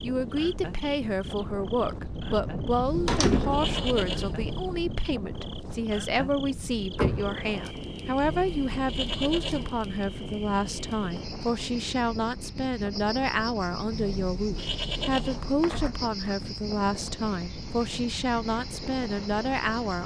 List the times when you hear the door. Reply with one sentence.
You can hear the door from 3.0 to 3.6 s, from 7.0 to 7.5 s and from 15.6 to 16.4 s.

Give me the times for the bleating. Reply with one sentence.
The bleating can be heard from 2.9 to 4.9 s, from 8.2 to 9.8 s and from 13.9 to 15.6 s.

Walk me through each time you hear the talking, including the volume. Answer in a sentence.
You can hear the talking from 0.0 to 20.0 s, at a steady volume.